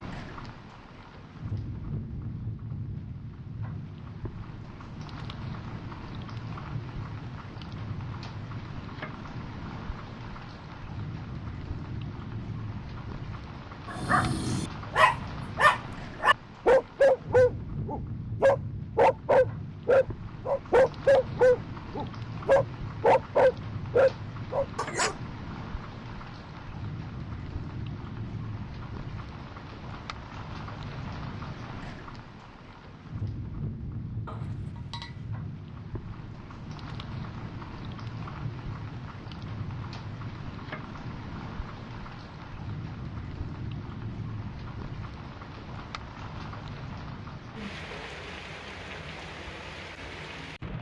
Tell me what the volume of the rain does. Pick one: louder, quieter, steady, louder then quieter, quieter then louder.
steady.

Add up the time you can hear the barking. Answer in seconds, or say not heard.
11 s.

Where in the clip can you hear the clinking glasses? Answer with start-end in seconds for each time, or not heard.
34.2-35.4.